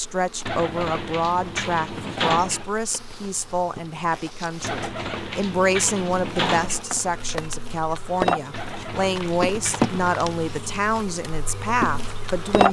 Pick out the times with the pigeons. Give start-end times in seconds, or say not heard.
0.5-2.6, 4.6-6.8, 8.5-10.1.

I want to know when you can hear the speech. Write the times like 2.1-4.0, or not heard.
0.0-12.6.